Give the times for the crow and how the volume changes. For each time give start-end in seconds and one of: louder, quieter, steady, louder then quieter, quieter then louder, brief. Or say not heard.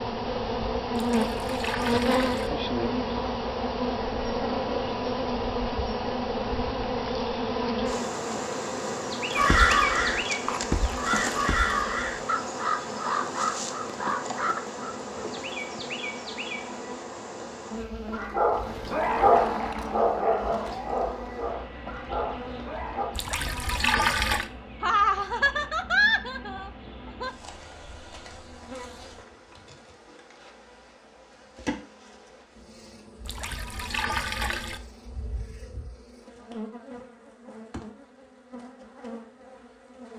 9.3-15.9 quieter.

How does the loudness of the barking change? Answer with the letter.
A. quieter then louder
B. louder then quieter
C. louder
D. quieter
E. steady
D.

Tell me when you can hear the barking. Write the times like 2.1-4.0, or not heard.
18.1-23.1.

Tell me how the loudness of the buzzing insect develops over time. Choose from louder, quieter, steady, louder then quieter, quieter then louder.
quieter.